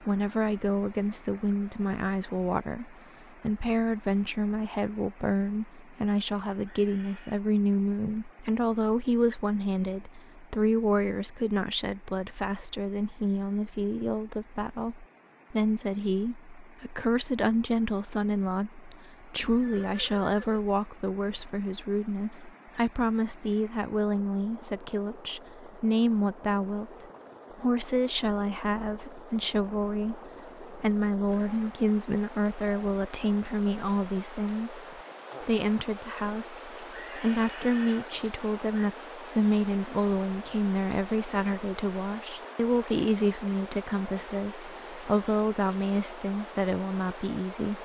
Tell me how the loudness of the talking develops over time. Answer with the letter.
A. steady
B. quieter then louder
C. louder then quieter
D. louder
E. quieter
A.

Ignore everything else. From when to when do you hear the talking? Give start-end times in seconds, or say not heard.
0.0-47.7.